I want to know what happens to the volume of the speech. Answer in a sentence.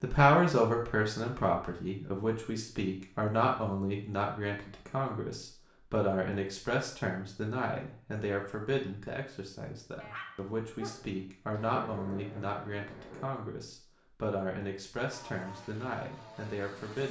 The volume of the speech goes down.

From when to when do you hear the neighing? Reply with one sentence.
The neighing can't be heard in this clip.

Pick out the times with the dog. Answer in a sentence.
The dog can be heard from 10.0 to 11.2 s.